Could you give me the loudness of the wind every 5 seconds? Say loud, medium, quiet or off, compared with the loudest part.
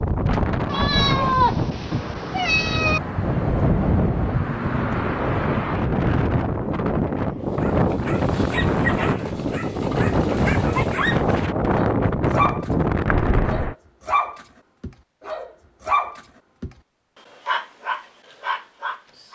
loud, loud, loud, off.